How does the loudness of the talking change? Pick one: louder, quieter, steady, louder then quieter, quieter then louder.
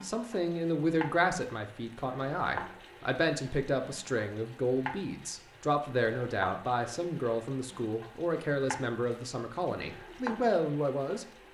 steady.